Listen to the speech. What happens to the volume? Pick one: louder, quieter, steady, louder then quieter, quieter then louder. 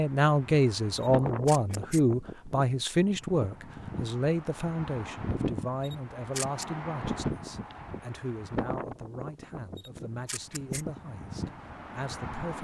quieter.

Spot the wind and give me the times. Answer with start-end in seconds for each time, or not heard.
0.0-12.5.